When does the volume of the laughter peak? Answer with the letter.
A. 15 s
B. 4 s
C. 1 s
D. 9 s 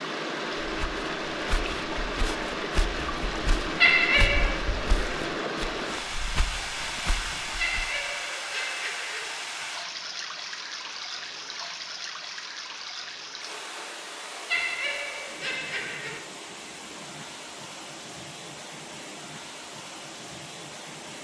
B.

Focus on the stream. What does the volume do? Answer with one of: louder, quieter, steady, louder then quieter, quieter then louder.
quieter.